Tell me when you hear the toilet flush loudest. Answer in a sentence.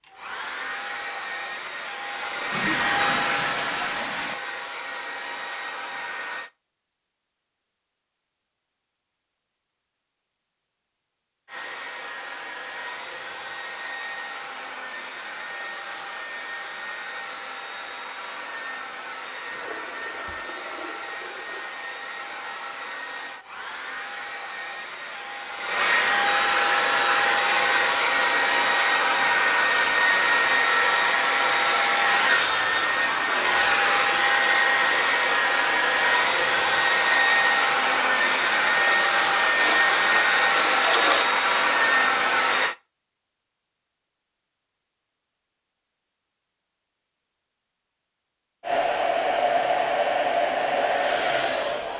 The volume of the toilet flush peaks at 41 seconds.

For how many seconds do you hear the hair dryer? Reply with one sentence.
The hair dryer can be heard for 41 seconds in total.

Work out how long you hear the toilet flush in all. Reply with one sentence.
The toilet flush can be heard for 6 seconds in total.